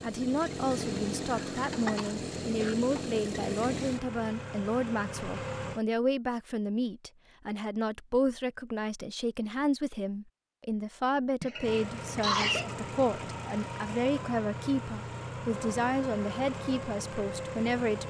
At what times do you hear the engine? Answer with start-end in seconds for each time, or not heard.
0.0-5.8, 11.6-18.0.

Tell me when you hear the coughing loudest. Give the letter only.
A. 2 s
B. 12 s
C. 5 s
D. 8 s
B.